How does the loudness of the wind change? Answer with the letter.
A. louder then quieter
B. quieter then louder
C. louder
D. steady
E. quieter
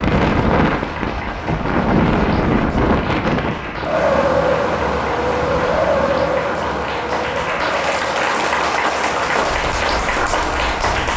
E.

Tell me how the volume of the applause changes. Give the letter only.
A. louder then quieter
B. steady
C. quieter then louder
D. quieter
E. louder
E.